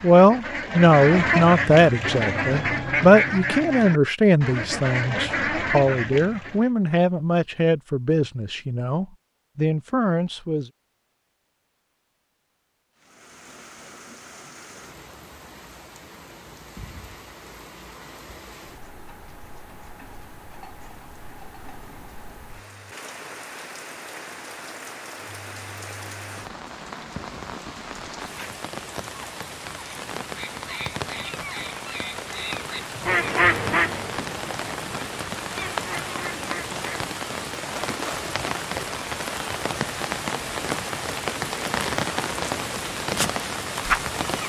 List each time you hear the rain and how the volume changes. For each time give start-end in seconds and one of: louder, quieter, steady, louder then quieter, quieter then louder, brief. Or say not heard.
12.9-44.4 louder.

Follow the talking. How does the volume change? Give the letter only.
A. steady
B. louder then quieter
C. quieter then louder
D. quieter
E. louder
D.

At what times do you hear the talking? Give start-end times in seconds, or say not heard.
0.0-10.7.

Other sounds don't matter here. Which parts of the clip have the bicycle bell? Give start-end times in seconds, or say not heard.
not heard.